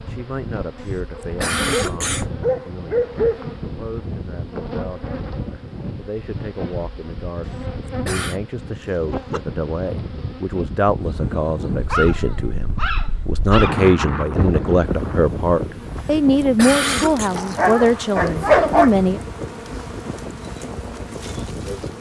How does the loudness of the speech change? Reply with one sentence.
The loudness of the speech goes up.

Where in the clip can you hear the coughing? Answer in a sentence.
The coughing can be heard from 1.2 to 2.2 s, from 7.8 to 8.4 s and from 16.4 to 17.3 s.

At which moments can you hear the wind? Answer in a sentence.
You can hear the wind from 0.0 to 21.9 s.